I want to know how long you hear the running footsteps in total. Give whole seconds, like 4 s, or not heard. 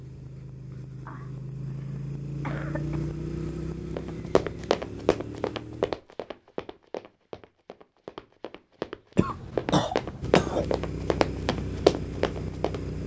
9 s.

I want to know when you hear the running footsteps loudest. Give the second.
12 s.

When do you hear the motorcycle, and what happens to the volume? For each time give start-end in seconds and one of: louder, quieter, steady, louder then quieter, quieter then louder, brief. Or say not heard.
0.0-6.0 louder then quieter
10.2-13.0 brief.